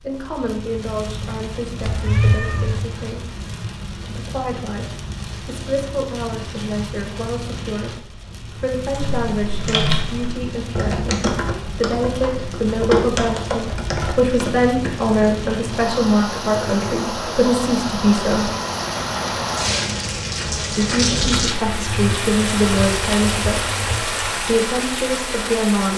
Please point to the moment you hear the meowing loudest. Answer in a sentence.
The loudest moment of the meowing is at 2 seconds.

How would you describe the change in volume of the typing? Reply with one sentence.
The volume of the typing goes down.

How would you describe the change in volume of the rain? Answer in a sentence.
The volume of the rain goes up.